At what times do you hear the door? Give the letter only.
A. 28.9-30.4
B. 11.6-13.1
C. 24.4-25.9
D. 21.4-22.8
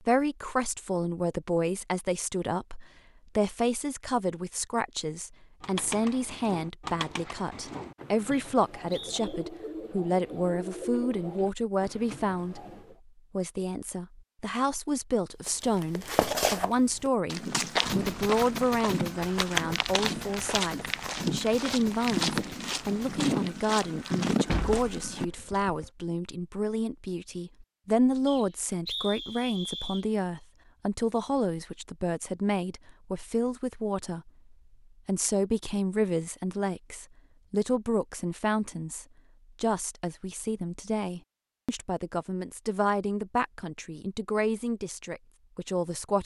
C.